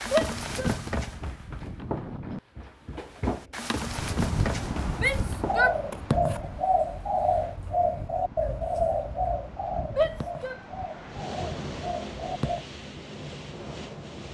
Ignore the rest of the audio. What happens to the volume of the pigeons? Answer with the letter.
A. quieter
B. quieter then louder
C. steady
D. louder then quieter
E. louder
A.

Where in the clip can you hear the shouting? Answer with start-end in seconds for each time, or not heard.
0.1-0.8, 5.0-5.8, 9.9-10.6.